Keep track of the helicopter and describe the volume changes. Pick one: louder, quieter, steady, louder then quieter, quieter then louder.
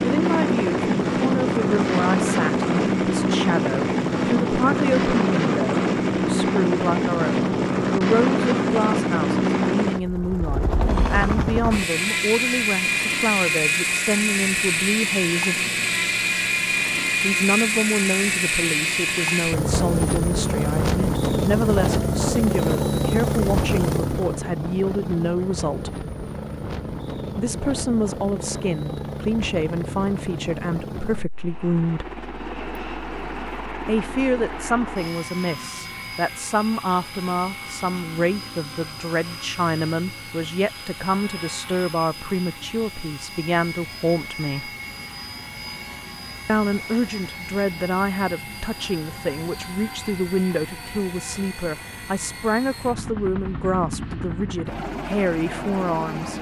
quieter.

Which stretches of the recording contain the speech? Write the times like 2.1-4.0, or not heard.
0.0-15.6, 17.2-25.9, 27.4-32.0, 33.9-44.7, 46.5-56.3.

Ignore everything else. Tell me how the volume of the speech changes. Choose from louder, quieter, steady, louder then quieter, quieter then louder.
steady.